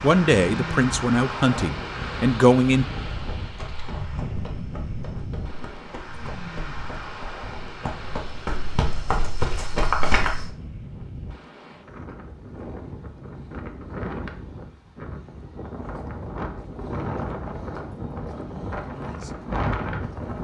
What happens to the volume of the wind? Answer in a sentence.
The loudness of the wind goes down, then up.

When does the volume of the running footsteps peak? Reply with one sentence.
The volume of the running footsteps peaks at 10 seconds.